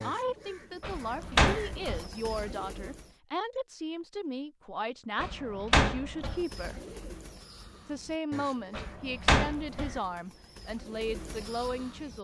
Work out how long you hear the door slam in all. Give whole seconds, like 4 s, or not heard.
4 s.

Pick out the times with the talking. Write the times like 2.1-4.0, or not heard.
0.0-6.8, 7.8-12.1.